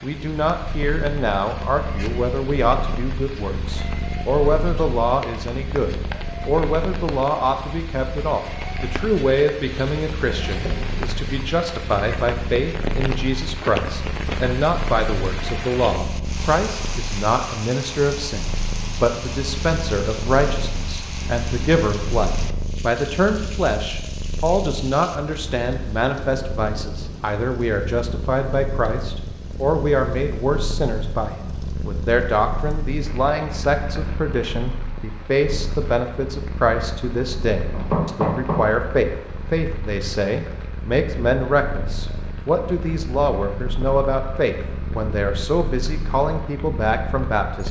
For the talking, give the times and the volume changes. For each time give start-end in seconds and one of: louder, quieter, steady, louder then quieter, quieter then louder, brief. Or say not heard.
0.0-47.6 steady.